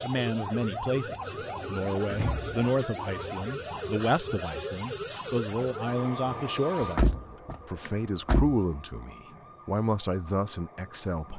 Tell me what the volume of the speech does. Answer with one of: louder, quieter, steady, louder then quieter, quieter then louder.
steady.